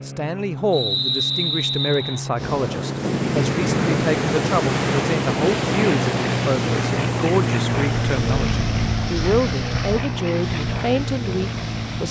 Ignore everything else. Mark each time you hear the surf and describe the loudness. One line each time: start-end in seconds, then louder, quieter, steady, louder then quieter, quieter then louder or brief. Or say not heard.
2.4-12.0 quieter.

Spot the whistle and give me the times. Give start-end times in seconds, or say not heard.
0.7-2.2.